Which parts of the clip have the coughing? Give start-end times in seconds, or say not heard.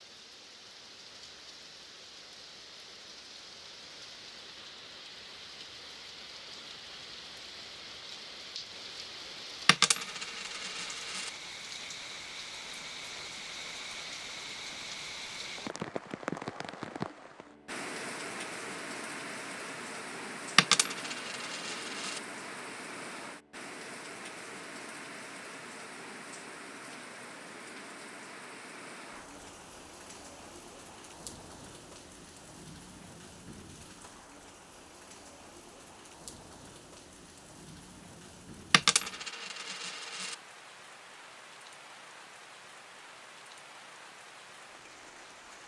not heard.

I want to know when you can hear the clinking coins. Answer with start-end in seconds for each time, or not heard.
9.7-11.3, 20.6-22.2, 38.7-40.4.